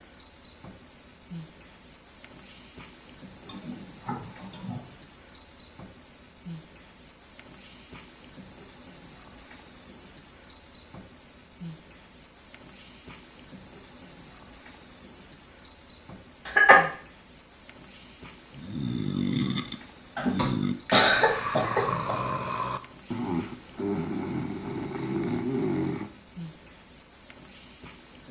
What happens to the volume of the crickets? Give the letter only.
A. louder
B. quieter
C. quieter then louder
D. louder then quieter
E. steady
E.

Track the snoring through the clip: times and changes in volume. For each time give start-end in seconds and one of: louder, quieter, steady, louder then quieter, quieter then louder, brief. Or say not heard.
18.5-26.1 steady.